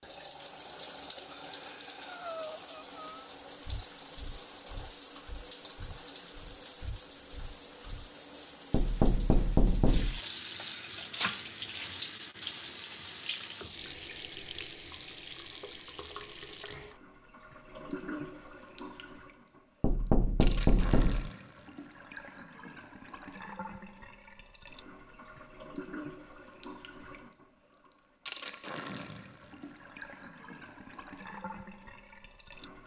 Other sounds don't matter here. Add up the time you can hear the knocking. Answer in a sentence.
The knocking can be heard for 3 seconds in total.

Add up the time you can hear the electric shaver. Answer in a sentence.
The electric shaver can't be heard in this clip.